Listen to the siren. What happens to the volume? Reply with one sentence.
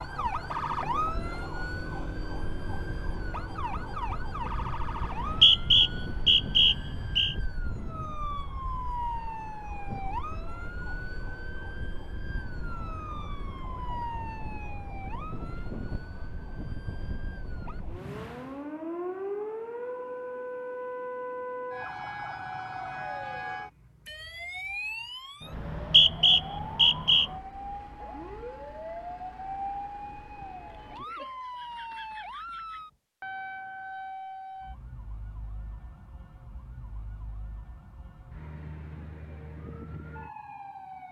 The loudness of the siren goes down.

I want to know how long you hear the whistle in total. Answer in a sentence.
The whistle can be heard for 4 seconds in total.